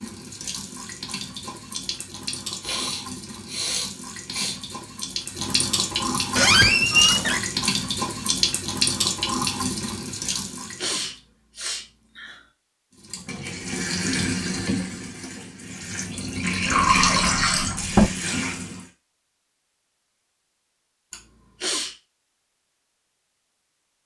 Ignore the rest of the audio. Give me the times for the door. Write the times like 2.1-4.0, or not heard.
6.3-7.5, 16.6-18.1.